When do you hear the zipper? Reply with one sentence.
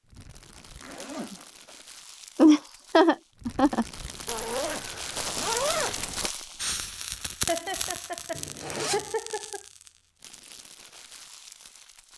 You can hear the zipper from 0.6 to 1.9 s, from 4.2 to 6.3 s and from 8.3 to 9.1 s.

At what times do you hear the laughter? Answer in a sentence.
You can hear the laughter from 2.4 to 3.9 s and from 7.5 to 9.6 s.